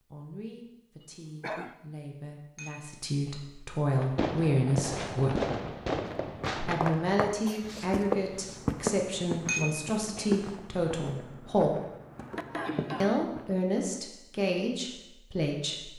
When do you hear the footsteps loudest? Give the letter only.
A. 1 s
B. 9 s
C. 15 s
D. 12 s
B.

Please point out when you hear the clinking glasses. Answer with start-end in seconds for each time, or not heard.
2.5-3.4, 9.4-10.4.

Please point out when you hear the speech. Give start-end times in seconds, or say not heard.
0.1-5.5, 6.7-11.8, 13.0-15.9.